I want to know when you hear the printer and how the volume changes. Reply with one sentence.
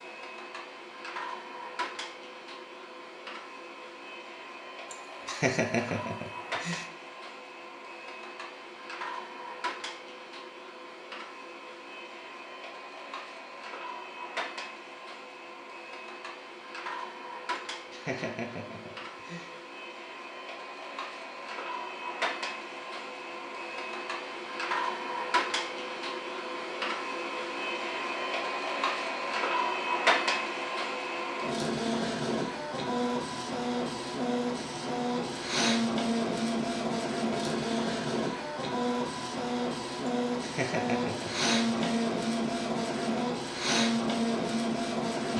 You can hear the printer from 0.0 to 45.3 s, getting louder.